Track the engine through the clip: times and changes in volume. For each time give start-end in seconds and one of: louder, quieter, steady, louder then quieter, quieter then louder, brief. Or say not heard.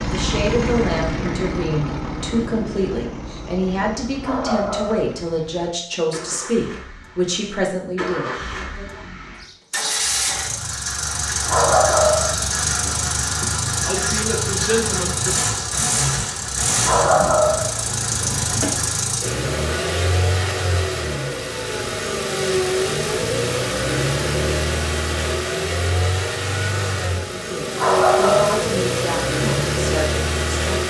0.0-30.8 louder.